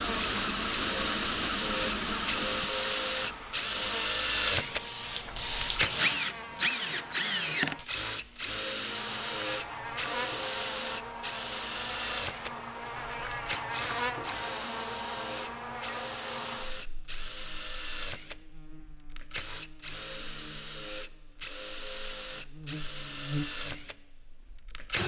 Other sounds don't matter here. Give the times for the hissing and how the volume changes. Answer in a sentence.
The hissing can be heard from 0.0 to 6.2 s, getting quieter then louder.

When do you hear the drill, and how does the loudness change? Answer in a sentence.
You can hear the drill from 0.1 to 25.0 s, getting quieter.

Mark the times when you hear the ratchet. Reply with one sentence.
The ratchet can't be heard in this clip.